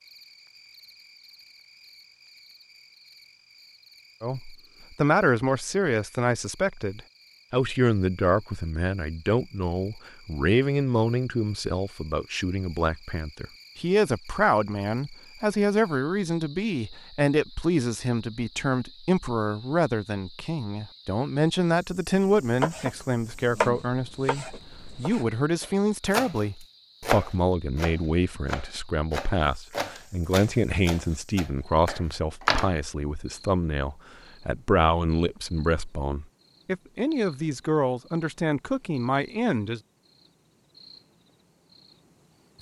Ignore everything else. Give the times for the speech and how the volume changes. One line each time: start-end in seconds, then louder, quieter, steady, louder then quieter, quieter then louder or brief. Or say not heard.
4.2-39.8 steady.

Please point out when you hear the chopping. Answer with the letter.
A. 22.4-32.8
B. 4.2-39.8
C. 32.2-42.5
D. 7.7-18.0
A.